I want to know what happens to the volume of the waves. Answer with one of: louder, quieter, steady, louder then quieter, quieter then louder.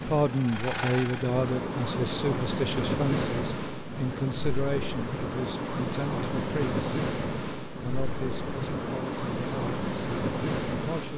steady.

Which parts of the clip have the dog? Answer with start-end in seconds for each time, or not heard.
not heard.